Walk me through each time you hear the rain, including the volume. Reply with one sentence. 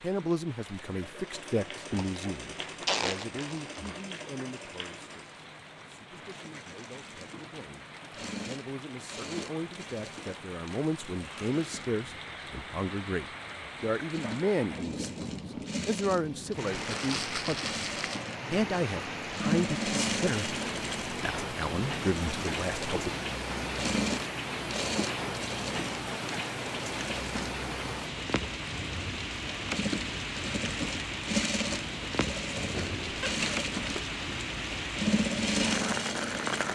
The rain can be heard from 0.0 to 36.7 s, getting louder.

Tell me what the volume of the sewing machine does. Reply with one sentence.
The volume of the sewing machine goes up.